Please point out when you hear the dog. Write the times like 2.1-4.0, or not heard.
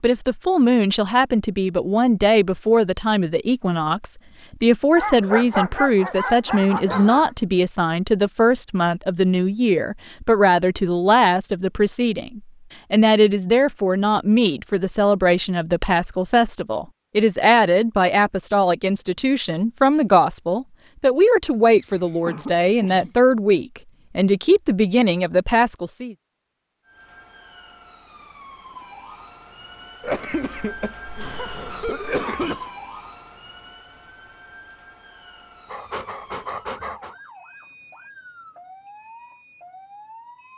5.0-7.3, 35.6-37.1.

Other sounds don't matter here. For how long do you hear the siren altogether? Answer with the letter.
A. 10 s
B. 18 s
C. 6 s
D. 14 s
D.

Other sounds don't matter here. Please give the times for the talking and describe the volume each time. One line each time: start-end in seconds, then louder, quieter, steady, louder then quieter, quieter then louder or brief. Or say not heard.
0.0-26.1 steady.